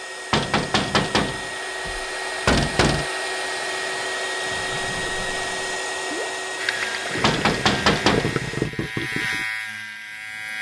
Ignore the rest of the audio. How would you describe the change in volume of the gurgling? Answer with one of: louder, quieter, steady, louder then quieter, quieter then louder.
louder.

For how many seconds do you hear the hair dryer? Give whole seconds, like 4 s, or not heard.
9 s.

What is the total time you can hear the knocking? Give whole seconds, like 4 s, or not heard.
4 s.